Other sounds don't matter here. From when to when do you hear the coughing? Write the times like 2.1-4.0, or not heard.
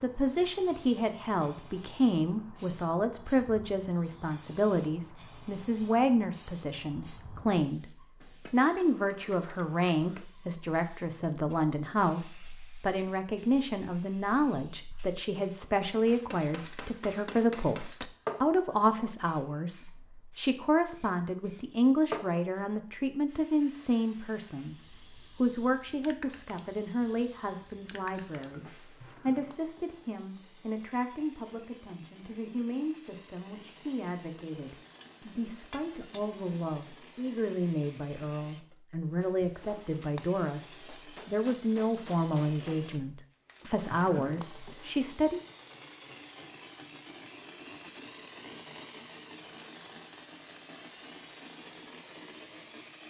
not heard.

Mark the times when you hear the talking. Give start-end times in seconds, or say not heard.
0.0-7.8, 8.5-28.6, 29.2-45.4.